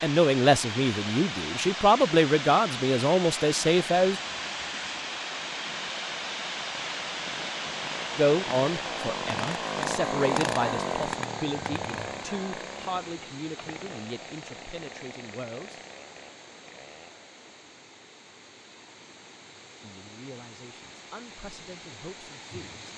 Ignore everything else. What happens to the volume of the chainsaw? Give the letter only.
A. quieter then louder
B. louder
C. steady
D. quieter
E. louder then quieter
E.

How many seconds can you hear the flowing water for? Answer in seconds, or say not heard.
23 s.